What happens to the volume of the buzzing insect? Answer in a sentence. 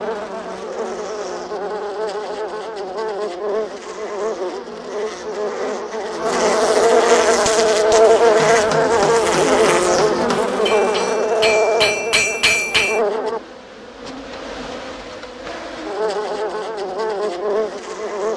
The volume of the buzzing insect goes up, then down.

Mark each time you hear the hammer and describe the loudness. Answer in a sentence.
You can hear the hammer from 7.2 to 13.0 s, getting louder.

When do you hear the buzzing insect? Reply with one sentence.
The buzzing insect can be heard from 0.0 to 18.3 s.